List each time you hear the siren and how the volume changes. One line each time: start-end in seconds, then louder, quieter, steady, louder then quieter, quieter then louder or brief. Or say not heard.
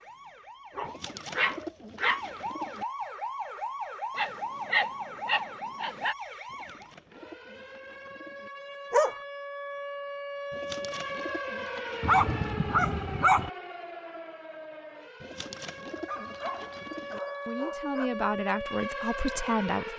0.0-19.9 steady.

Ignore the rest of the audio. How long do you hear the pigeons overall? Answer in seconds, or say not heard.
8 s.